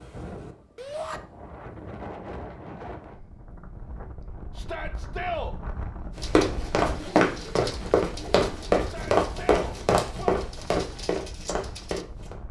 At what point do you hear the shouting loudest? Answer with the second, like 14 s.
5 s.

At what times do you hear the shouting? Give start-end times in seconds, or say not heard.
0.8-1.2, 4.5-5.5, 8.8-10.4.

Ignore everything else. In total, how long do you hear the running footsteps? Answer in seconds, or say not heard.
6 s.